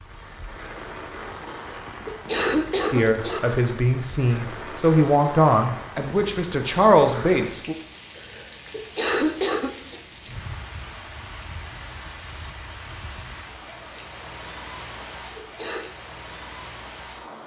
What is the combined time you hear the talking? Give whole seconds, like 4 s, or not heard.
5 s.